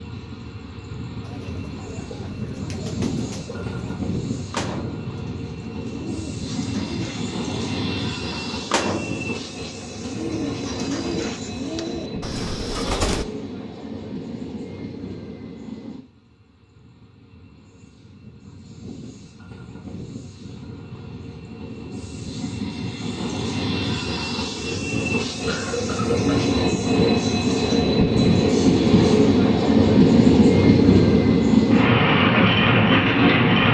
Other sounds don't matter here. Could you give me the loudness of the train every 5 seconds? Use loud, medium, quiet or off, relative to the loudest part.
quiet, quiet, quiet, quiet, quiet, loud, loud.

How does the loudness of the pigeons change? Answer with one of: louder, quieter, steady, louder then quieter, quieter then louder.
louder.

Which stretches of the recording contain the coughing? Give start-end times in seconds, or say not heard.
25.4-26.4.